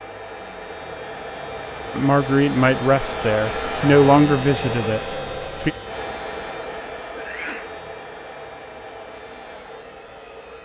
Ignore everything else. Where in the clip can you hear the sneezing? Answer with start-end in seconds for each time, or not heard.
7.2-7.8.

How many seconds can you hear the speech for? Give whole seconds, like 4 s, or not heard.
4 s.